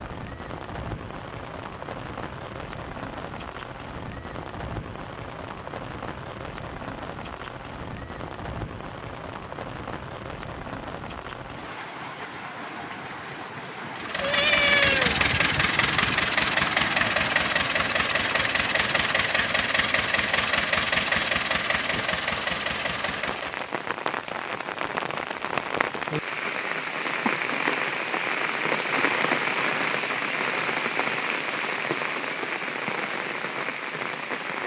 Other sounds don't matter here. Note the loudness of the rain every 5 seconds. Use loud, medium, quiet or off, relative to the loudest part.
medium, medium, medium, medium, medium, loud, loud.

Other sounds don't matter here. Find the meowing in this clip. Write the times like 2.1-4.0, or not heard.
14.2-15.2.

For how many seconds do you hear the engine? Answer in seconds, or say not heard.
10 s.